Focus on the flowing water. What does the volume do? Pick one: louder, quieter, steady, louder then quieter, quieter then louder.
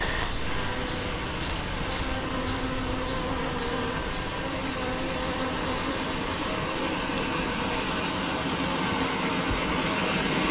louder.